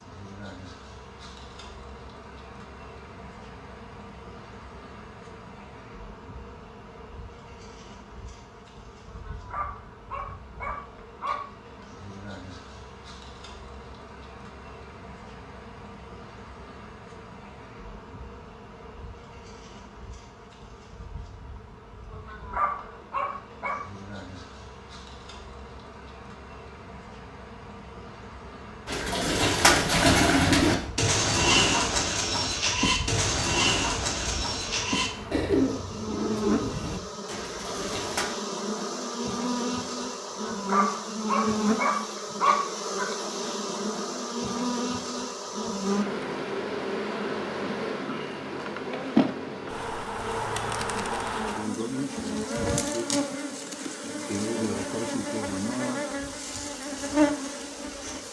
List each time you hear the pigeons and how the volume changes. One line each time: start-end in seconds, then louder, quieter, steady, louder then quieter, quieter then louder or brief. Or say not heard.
28.9-38.2 quieter.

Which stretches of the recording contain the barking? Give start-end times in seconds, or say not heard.
9.1-11.8, 22.1-23.8, 40.5-43.0.